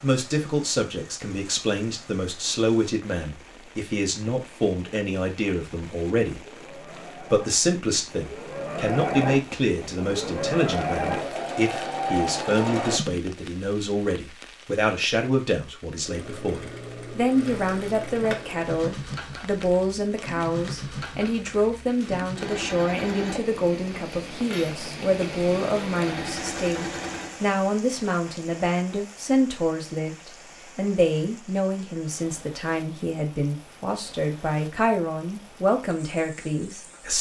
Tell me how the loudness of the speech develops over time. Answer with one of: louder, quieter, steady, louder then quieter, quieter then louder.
steady.